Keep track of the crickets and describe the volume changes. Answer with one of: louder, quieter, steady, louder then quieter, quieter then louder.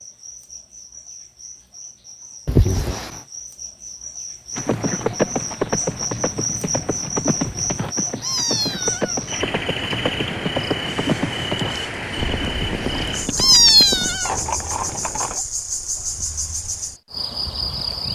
louder.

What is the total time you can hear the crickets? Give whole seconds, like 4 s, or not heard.
18 s.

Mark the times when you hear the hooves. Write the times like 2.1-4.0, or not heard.
4.5-15.4.